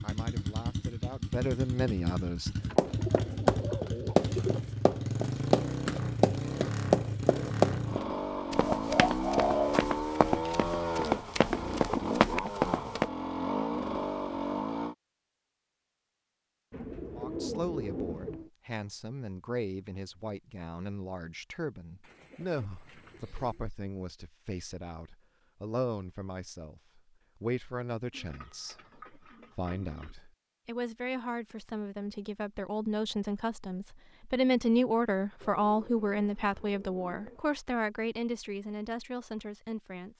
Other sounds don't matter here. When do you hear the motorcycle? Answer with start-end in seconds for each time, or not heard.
0.0-14.9.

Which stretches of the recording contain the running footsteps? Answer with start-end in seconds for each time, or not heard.
2.8-13.1.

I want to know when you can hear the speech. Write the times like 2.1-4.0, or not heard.
0.0-2.5, 17.1-40.1.